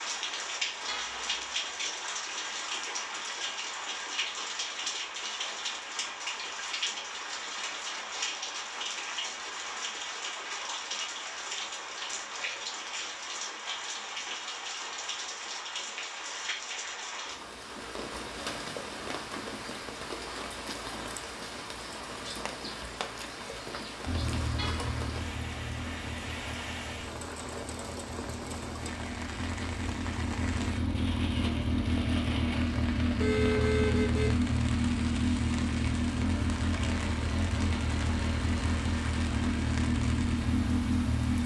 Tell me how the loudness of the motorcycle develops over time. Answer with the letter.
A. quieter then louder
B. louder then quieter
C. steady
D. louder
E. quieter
D.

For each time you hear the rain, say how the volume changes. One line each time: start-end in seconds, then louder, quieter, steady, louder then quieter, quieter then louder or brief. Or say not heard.
0.0-41.4 quieter.